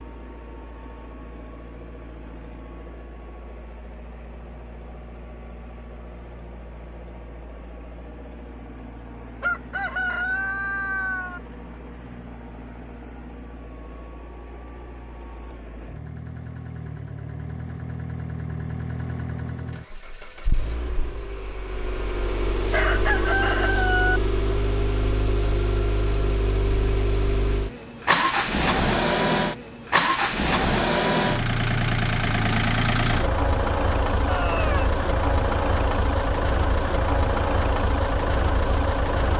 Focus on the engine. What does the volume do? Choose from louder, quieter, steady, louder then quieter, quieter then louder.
louder.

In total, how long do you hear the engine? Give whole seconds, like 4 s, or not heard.
39 s.